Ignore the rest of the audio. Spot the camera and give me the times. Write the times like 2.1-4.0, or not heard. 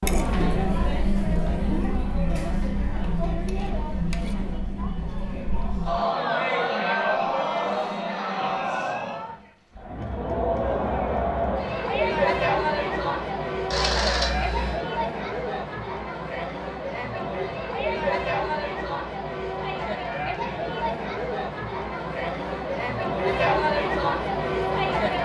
13.7-14.8.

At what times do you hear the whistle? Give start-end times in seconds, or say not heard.
not heard.